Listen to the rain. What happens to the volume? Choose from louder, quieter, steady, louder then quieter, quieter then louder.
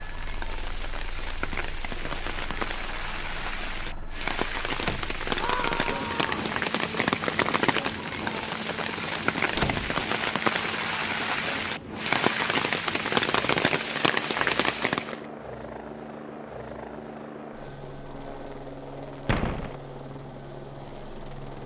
louder.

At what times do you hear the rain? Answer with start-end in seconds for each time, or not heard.
0.0-15.2.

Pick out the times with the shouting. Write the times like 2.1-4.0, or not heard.
5.3-6.3.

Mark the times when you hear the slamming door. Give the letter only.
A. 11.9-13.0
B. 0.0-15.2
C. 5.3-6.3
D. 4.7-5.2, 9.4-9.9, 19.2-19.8
D.